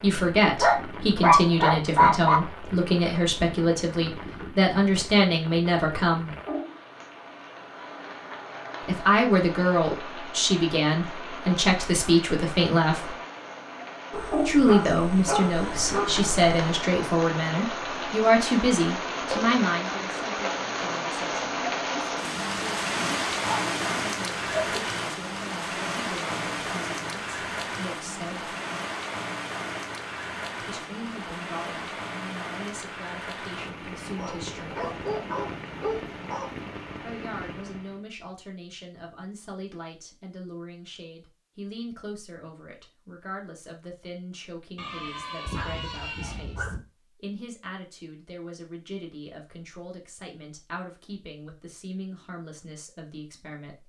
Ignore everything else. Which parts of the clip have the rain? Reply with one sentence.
The rain can be heard from 0.0 to 38.0 s.